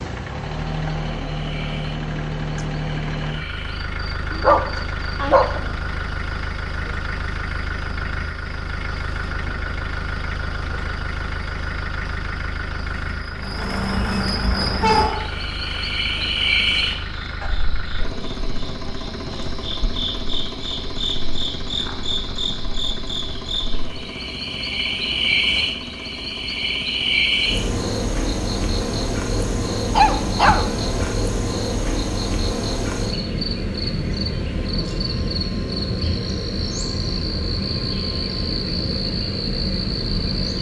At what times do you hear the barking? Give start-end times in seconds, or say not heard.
4.4-5.6, 14.8-17.5, 29.9-31.1.